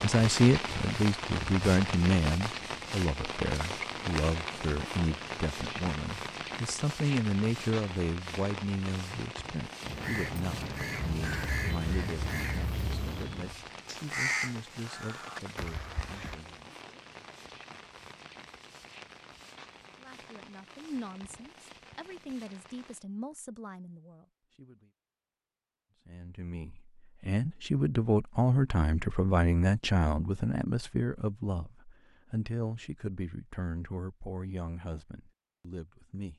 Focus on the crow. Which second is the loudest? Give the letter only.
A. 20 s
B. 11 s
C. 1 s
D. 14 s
D.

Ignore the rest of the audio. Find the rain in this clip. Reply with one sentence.
You can hear the rain from 0.0 to 23.1 s.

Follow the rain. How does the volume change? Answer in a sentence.
The loudness of the rain goes down.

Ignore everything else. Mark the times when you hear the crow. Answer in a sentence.
The crow can be heard from 9.8 to 16.4 s.